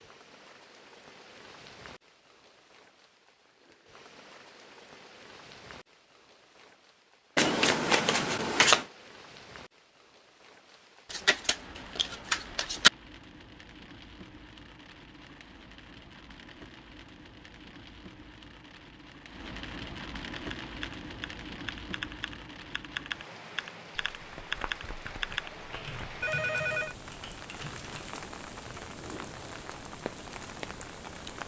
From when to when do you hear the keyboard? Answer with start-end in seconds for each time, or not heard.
20.4-28.3.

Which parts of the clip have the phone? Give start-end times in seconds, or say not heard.
26.2-26.9.